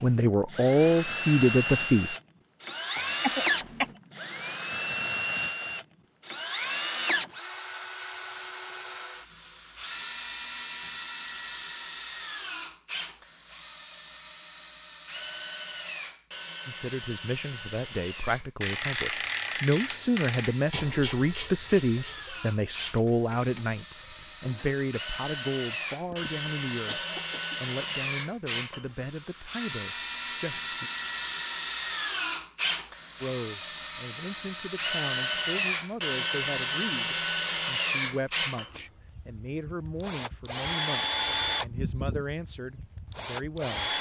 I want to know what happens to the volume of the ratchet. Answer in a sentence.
The loudness of the ratchet goes down.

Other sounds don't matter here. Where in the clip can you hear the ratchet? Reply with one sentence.
You can hear the ratchet from 18.6 to 24.8 s.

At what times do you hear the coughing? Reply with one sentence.
The coughing can be heard from 3.0 to 3.9 s and from 26.1 to 27.6 s.